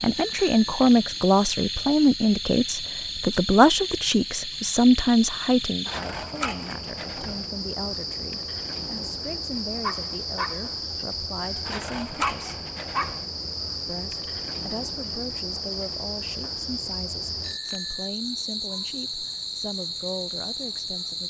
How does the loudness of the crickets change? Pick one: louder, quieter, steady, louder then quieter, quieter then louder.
steady.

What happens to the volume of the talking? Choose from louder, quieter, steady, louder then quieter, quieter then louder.
quieter.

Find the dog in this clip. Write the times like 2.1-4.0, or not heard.
9.8-13.2.